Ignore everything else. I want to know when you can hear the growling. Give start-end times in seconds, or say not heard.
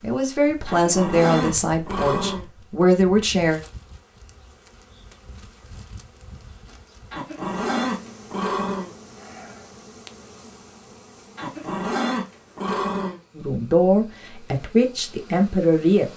0.7-2.5, 7.1-8.9, 11.3-13.2.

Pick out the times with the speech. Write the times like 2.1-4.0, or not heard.
0.0-3.6, 13.3-16.1.